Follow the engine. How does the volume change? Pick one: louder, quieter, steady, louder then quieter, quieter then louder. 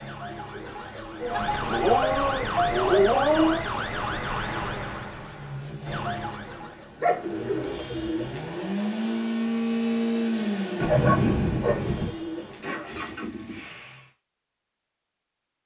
louder then quieter.